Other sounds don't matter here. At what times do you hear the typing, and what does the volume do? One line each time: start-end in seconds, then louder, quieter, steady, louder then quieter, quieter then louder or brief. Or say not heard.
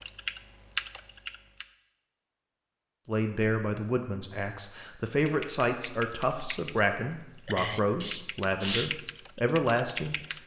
0.0-1.8 brief
5.2-10.4 louder then quieter.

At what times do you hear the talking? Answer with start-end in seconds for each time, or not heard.
3.0-10.2.